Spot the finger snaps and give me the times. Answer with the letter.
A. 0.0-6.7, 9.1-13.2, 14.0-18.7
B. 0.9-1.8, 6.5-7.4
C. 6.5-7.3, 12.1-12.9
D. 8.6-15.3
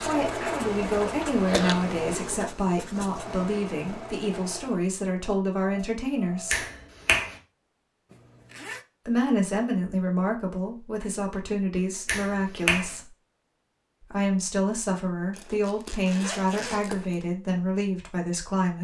C.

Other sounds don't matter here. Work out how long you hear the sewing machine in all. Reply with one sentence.
The sewing machine can be heard for 7 seconds in total.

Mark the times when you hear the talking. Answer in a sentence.
The talking can be heard from 0.0 to 6.7 s, from 9.1 to 13.2 s and from 14.0 to 18.7 s.